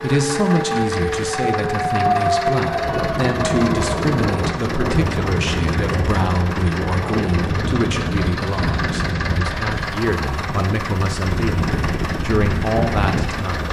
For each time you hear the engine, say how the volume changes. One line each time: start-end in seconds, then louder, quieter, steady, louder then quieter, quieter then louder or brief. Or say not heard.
0.0-13.6 steady.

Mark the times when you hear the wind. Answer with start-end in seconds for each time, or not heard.
2.6-13.6.